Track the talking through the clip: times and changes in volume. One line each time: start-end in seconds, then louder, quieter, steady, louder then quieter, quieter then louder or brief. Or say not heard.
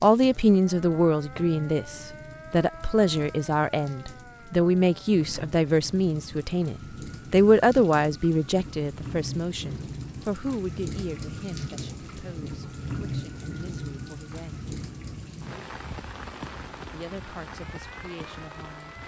0.0-14.7 quieter
16.9-18.9 brief.